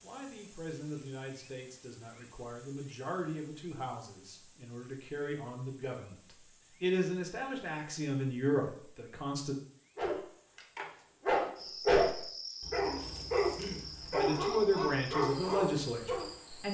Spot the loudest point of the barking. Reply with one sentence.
The loudest moment of the barking is at 12 seconds.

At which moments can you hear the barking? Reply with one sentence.
The barking can be heard from 9.9 to 16.3 s.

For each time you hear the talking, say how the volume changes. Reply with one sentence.
You can hear the talking from 0.0 to 9.6 s, getting louder; and briefly from 14.1 to 16.6 s.